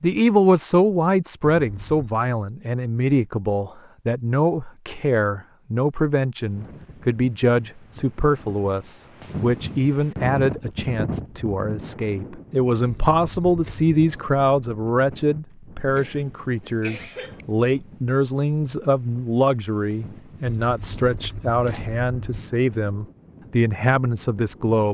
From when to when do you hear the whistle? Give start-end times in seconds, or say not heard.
not heard.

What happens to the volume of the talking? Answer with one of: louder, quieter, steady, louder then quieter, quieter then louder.
steady.